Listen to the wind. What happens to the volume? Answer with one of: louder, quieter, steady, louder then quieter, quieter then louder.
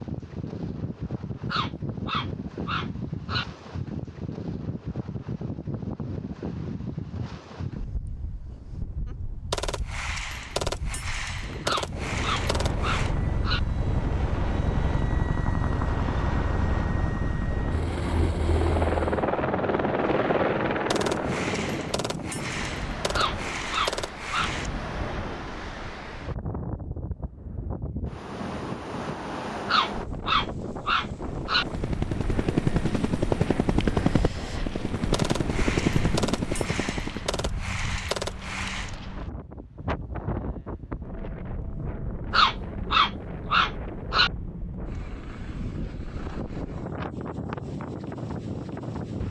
steady.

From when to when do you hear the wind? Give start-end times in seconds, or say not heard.
0.0-49.2.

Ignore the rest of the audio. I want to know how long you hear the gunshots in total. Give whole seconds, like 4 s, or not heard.
11 s.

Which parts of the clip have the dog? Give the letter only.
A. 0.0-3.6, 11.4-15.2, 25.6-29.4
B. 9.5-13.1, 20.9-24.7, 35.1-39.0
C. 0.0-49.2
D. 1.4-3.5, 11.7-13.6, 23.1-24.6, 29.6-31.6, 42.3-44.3
D.